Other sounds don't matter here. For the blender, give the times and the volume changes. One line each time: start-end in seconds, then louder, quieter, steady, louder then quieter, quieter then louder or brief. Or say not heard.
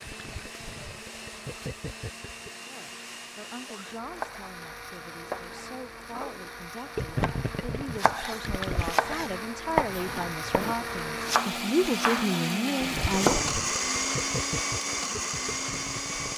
0.0-16.3 louder.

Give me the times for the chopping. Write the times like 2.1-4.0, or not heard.
4.0-13.5.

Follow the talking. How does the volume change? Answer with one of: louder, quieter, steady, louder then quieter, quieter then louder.
louder.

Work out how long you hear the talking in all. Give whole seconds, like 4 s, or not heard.
11 s.